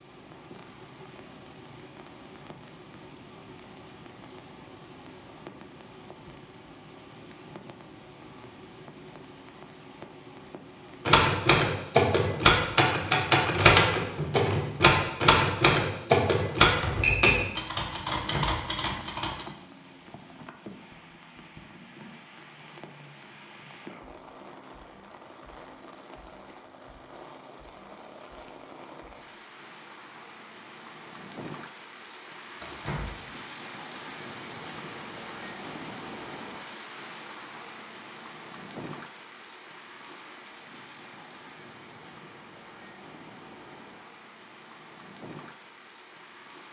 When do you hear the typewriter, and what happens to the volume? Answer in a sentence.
The typewriter can be heard from 11.1 to 19.4 s, getting quieter.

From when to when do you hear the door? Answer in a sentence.
You can hear the door from 18.1 to 18.6 s and from 32.6 to 33.2 s.